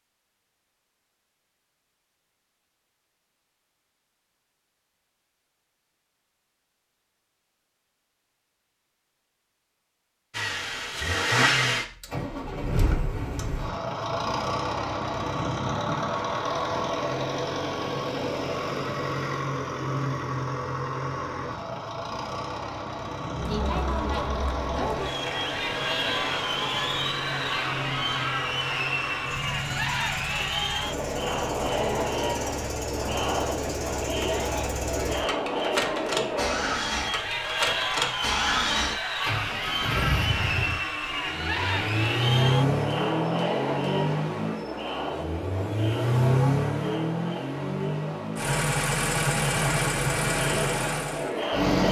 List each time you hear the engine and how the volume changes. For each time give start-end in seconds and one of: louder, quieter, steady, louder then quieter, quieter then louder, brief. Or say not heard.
10.3-51.8 quieter then louder.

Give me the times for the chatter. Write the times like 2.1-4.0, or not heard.
23.4-51.8.